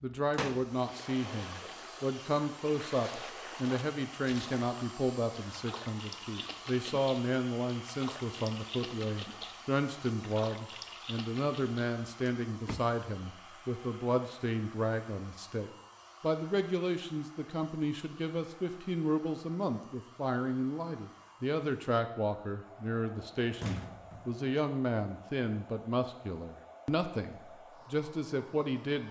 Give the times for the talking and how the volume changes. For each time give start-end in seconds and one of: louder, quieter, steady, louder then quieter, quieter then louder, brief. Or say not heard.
0.0-29.0 steady.